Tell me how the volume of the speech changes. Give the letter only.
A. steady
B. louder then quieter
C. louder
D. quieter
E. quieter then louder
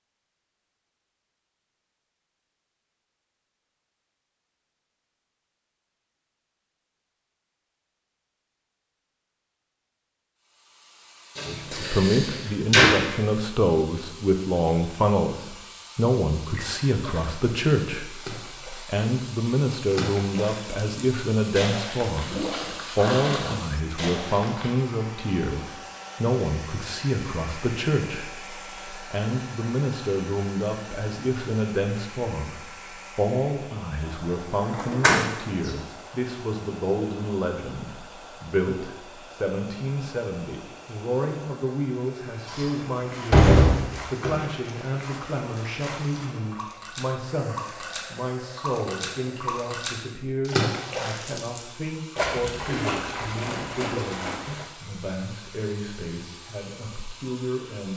D.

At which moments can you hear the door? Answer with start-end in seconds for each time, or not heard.
11.3-12.9, 34.7-35.7, 42.5-44.5.